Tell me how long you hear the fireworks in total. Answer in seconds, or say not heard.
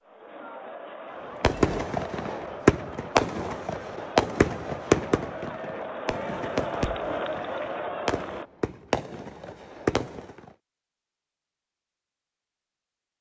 9 s.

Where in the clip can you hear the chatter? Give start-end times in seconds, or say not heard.
0.0-8.5.